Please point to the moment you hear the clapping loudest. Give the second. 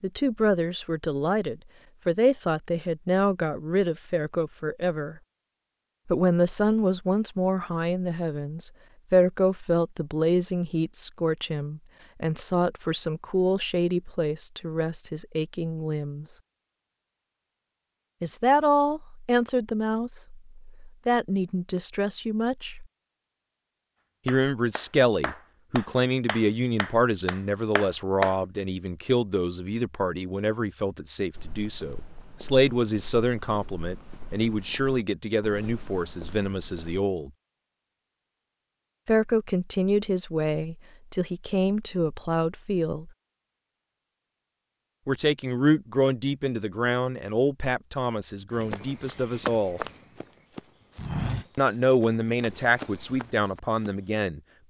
28 s.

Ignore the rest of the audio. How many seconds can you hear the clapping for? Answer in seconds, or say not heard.
4 s.